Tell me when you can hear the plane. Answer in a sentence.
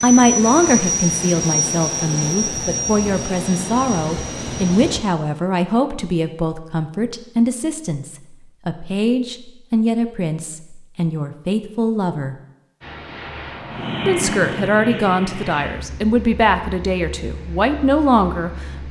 You can hear the plane from 0.0 to 5.0 s and from 12.8 to 18.8 s.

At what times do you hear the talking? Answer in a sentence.
The talking can be heard from 0.0 to 12.3 s and from 14.1 to 18.8 s.